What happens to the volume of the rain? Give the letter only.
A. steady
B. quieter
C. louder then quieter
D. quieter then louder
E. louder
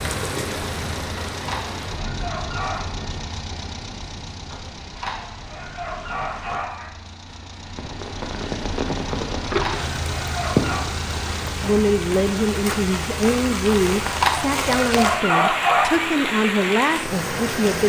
D.